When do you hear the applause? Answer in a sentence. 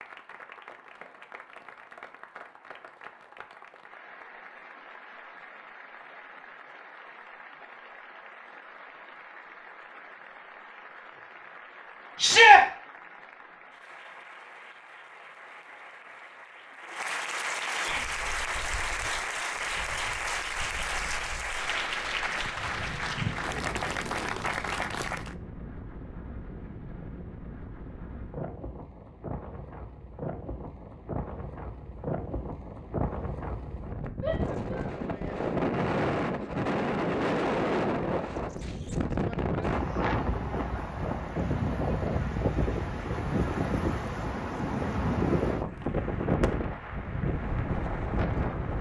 The applause can be heard from 0.0 to 25.4 s and from 45.5 to 48.7 s.